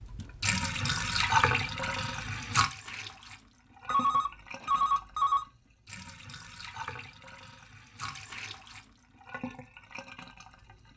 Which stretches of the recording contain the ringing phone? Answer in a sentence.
The ringing phone can be heard from 3.9 to 5.5 s.